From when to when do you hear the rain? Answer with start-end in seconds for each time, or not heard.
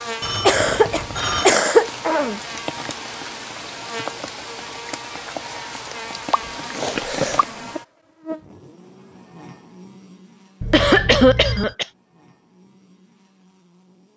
0.0-7.5.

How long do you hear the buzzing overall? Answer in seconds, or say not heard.
14 s.